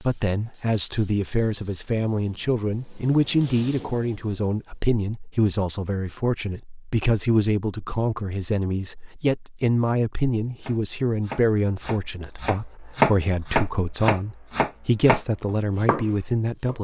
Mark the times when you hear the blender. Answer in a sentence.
The blender can't be heard in this clip.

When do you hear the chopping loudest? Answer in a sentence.
The volume of the chopping peaks at 13 seconds.